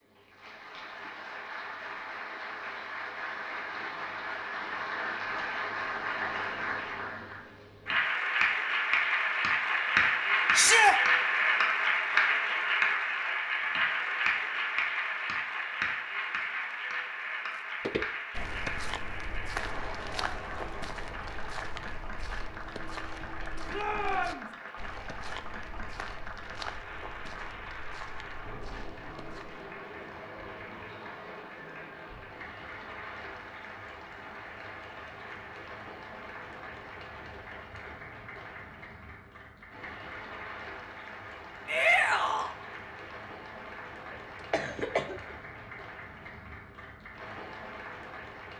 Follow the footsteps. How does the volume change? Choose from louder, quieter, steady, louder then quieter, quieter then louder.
quieter.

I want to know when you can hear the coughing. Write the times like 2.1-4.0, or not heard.
44.1-45.2.